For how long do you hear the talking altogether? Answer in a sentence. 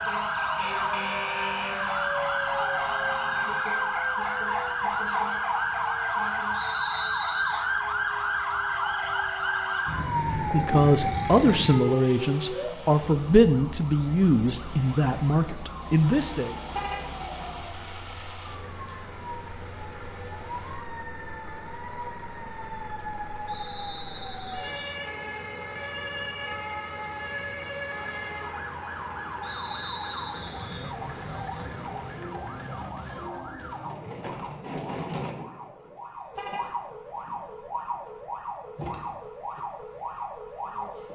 The talking can be heard for 6 seconds in total.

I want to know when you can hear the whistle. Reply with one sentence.
You can hear the whistle from 6.5 to 7.7 s, from 23.4 to 24.8 s and from 29.4 to 30.9 s.